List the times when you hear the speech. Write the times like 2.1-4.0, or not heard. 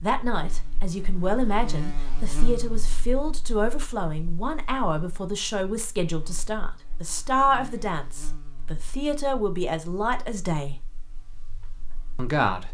0.0-10.8, 12.2-12.6.